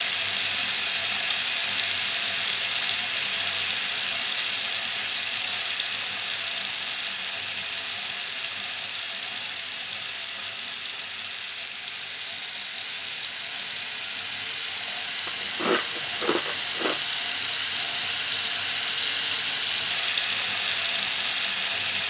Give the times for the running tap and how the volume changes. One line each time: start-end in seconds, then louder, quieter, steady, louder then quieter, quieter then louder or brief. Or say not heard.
0.0-22.0 quieter then louder.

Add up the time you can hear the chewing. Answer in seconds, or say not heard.
2 s.